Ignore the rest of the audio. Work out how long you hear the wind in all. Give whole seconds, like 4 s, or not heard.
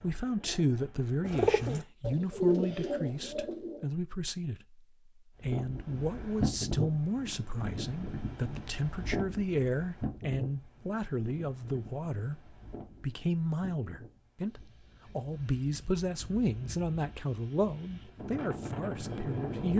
14 s.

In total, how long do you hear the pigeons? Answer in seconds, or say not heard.
4 s.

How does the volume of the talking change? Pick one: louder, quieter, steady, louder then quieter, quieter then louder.
steady.